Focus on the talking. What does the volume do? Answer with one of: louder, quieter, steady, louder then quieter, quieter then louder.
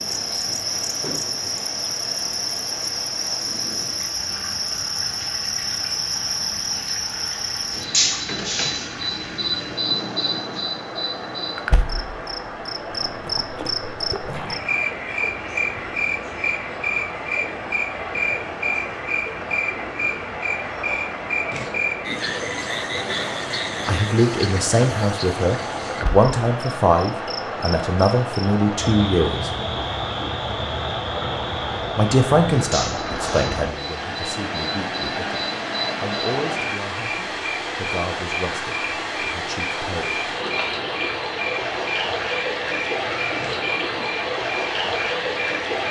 quieter.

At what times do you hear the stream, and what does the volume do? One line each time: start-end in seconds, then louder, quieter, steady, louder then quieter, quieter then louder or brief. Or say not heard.
0.0-45.8 louder.